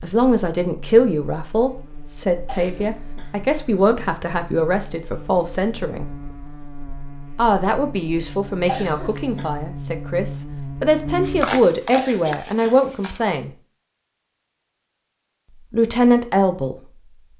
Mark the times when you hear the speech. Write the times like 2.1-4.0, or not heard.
0.0-6.0, 7.3-13.5, 15.6-16.8.